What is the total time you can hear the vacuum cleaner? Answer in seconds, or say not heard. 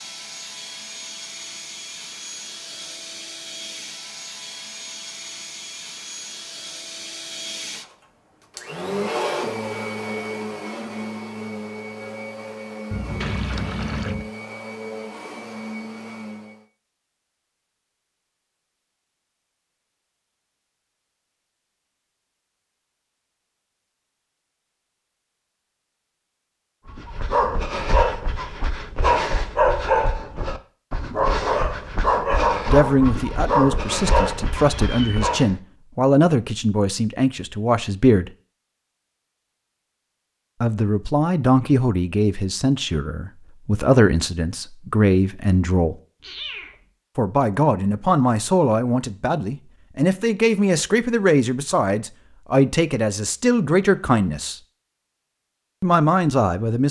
17 s.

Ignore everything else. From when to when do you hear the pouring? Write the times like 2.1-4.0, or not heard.
13.2-14.2.